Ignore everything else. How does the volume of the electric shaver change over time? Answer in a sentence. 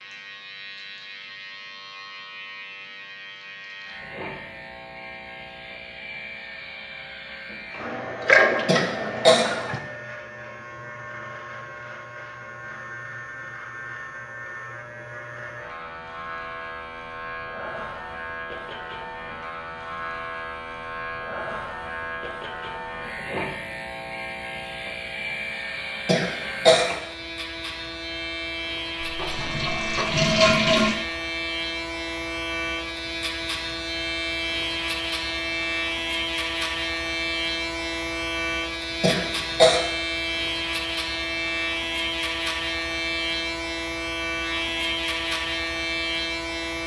The volume of the electric shaver goes up.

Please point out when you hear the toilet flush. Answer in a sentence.
You can hear the toilet flush from 7.8 to 9.8 s and from 29.0 to 30.9 s.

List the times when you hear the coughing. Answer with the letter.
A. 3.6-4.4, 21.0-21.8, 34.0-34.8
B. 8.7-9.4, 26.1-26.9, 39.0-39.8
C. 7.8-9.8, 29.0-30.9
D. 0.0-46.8
B.